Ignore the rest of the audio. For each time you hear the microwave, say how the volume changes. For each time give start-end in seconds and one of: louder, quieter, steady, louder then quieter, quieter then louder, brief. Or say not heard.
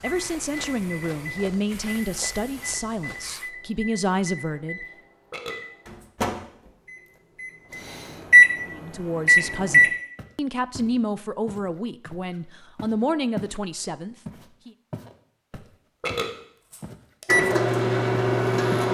0.0-9.9 louder
17.2-18.8 brief.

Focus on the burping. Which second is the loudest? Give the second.
16 s.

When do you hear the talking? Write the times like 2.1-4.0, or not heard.
0.0-4.8, 8.7-14.7.